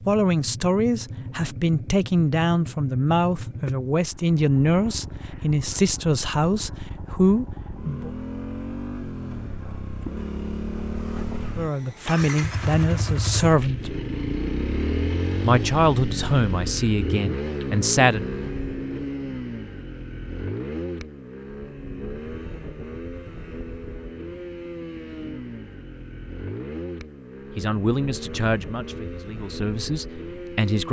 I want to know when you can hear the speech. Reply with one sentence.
You can hear the speech from 0.1 to 8.1 s, from 11.6 to 13.9 s, from 15.4 to 18.2 s and from 27.6 to 30.8 s.